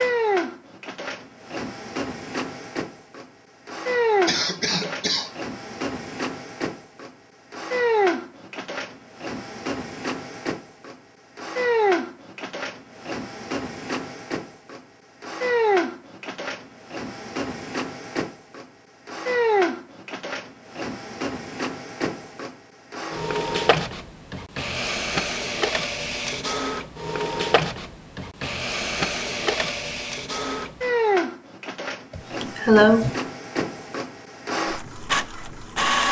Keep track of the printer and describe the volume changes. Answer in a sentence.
The volume of the printer stays about the same.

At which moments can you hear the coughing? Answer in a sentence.
The coughing can be heard from 4.2 to 5.3 s and from 32.1 to 33.1 s.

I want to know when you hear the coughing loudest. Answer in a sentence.
The loudest moment of the coughing is at 33 seconds.